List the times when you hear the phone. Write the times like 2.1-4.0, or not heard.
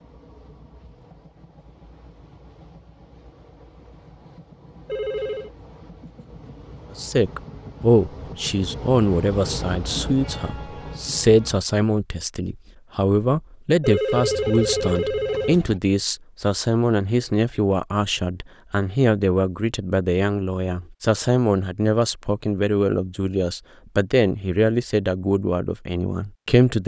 4.8-5.5, 13.8-15.6.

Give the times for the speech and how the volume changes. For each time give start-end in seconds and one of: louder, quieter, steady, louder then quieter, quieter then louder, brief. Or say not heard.
7.0-26.8 steady.